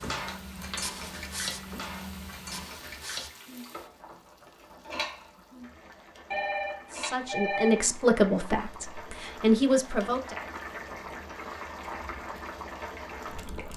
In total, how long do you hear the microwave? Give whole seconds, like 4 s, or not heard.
3 s.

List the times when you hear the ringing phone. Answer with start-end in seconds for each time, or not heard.
6.3-7.8.